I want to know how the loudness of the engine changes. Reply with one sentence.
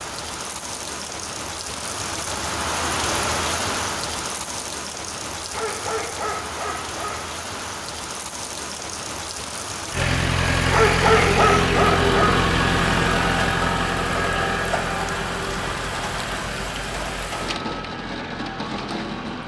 The volume of the engine goes down.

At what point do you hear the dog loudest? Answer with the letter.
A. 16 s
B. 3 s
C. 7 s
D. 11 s
D.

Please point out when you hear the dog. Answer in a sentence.
The dog can be heard from 5.5 to 7.2 s and from 10.7 to 12.4 s.